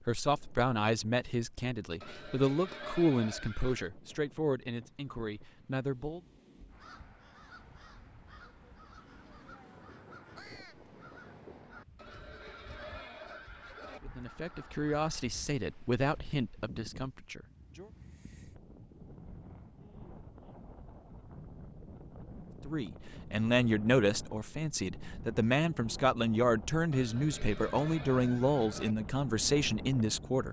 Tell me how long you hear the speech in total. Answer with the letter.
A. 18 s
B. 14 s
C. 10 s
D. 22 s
A.